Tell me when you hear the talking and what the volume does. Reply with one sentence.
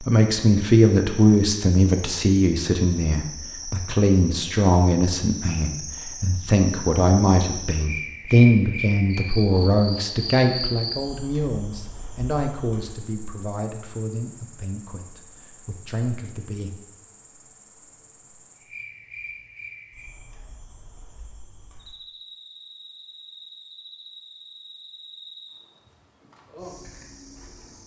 The talking can be heard from 0.0 to 16.7 s, getting quieter.